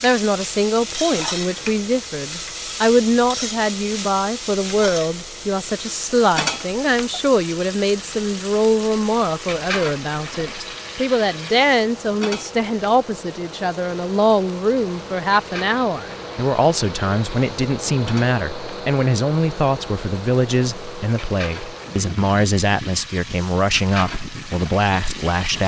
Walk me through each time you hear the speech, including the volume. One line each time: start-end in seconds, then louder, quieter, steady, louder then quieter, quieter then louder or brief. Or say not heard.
0.0-25.6 steady.